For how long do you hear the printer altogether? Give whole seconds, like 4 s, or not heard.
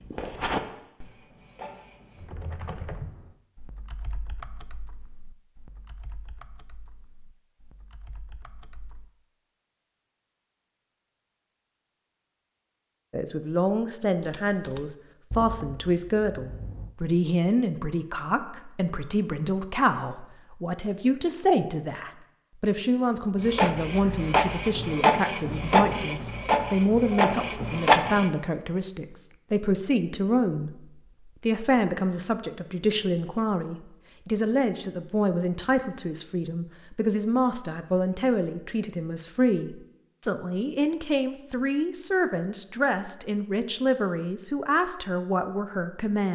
7 s.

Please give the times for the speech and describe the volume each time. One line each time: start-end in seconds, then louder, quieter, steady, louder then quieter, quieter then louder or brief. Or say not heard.
13.1-30.8 steady
31.4-46.2 steady.